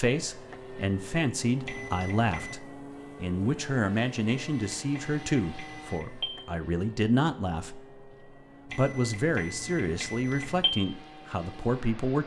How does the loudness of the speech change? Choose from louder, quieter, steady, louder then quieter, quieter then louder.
steady.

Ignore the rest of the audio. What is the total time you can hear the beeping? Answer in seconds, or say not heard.
5 s.